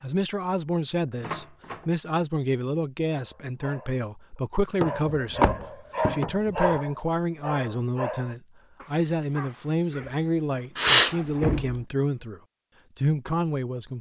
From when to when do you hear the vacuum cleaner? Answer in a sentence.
The vacuum cleaner can't be heard in this clip.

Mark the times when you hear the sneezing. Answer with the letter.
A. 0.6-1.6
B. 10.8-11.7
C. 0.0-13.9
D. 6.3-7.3
B.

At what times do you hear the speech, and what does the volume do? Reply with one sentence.
The speech can be heard from 0.0 to 13.9 s, at a steady volume.